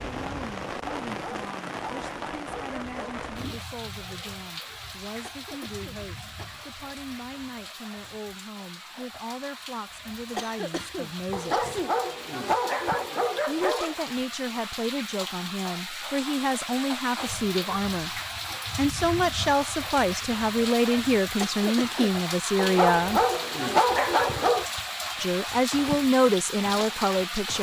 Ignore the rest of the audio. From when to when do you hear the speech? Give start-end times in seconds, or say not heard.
0.1-11.7, 13.4-23.2, 25.2-27.5.